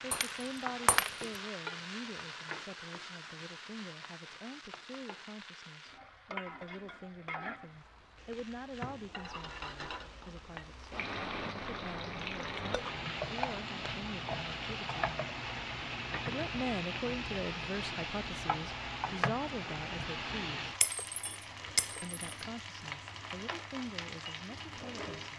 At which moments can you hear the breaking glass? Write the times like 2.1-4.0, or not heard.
0.1-1.4, 20.8-22.1.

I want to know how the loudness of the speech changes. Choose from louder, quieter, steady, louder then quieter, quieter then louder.
louder then quieter.